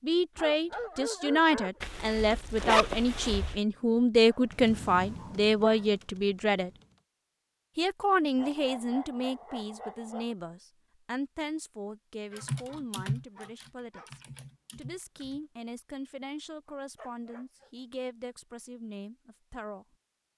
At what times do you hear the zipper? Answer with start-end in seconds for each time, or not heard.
1.8-3.6.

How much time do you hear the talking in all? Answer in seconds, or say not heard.
19 s.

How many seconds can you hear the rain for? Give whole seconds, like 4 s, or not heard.
not heard.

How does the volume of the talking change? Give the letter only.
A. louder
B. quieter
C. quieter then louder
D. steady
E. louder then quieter
B.